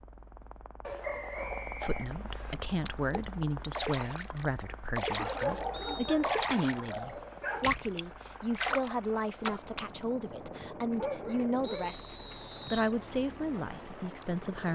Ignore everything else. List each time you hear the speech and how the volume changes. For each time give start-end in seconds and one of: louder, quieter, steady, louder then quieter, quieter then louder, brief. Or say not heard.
1.6-14.6 steady.